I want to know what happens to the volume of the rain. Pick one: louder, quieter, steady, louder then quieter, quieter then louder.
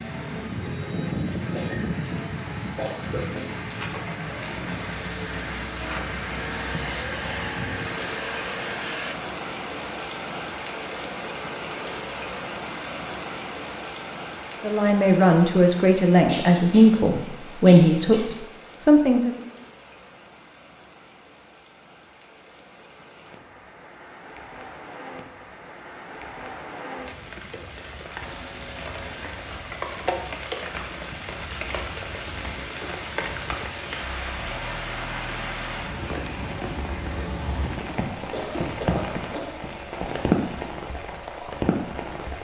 quieter then louder.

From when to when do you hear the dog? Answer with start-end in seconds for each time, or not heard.
not heard.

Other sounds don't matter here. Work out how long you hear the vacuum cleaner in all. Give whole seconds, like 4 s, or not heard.
23 s.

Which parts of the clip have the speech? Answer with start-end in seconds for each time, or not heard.
14.6-19.3.